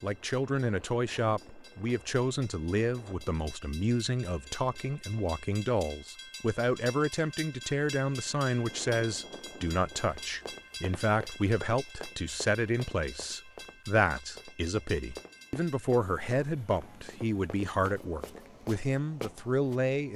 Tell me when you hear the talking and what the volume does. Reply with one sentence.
The talking can be heard from 0.0 to 20.1 s, at a steady volume.